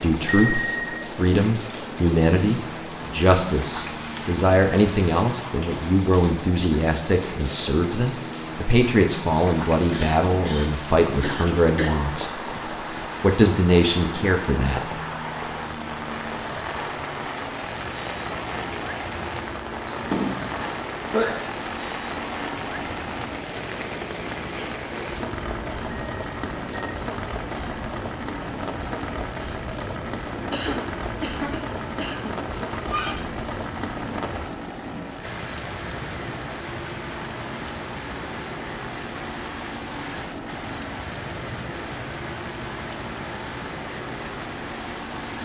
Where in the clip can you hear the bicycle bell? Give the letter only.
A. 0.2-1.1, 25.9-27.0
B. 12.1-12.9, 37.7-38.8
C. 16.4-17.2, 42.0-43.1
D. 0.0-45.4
A.